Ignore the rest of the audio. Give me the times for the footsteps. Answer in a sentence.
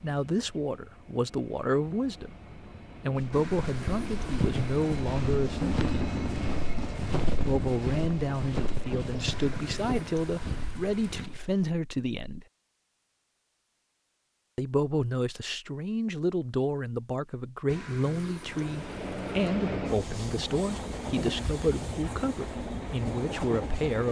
The footsteps can be heard from 3.1 to 11.7 s.